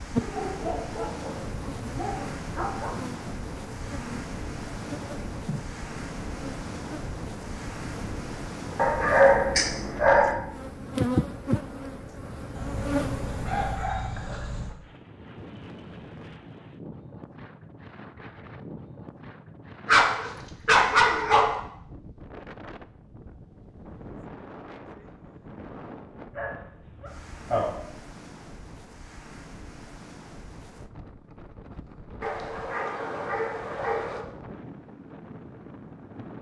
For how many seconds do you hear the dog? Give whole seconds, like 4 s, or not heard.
12 s.